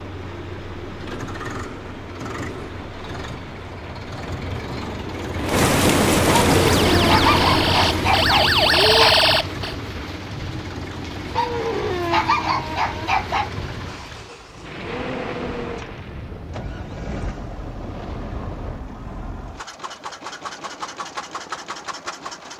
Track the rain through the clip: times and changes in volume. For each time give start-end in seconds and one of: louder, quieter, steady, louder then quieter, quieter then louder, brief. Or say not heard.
0.0-18.9 louder then quieter.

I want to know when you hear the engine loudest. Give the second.
7 s.